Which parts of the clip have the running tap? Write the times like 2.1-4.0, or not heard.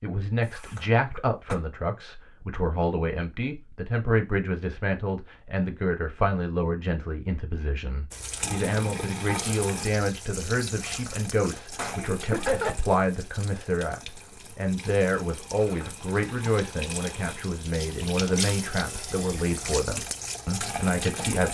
8.1-21.4.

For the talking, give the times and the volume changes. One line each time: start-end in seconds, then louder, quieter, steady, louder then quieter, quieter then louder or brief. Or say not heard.
0.0-21.4 steady.